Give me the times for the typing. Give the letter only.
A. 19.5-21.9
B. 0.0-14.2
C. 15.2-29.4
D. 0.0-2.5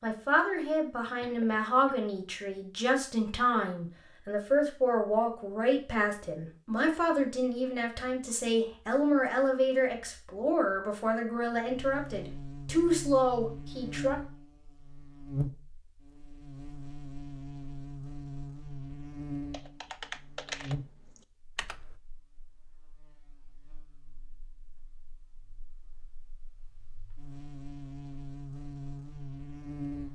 A.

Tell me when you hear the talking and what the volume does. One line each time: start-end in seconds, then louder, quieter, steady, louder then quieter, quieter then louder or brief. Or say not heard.
0.0-14.2 steady.